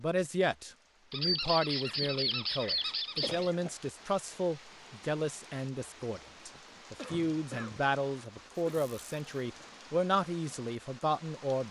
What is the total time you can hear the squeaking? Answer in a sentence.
The squeaking can be heard for 3 seconds in total.